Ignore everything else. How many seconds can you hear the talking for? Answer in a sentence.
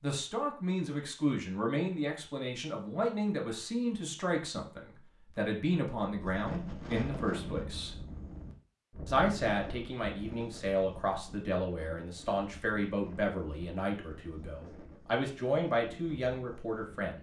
You can hear the talking for 16 seconds altogether.